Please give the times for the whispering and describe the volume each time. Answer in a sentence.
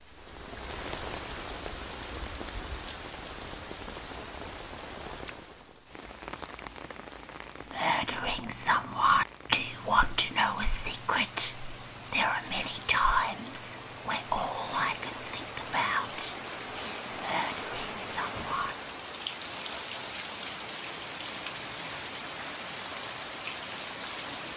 You can hear the whispering from 7.5 to 18.8 s, getting quieter.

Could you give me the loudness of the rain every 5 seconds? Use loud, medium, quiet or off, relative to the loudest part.
loud, medium, medium, loud, loud.